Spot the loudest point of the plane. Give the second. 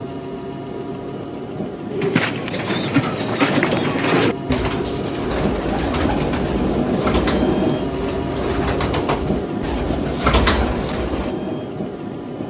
7 s.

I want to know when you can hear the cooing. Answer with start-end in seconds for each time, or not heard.
1.9-11.3.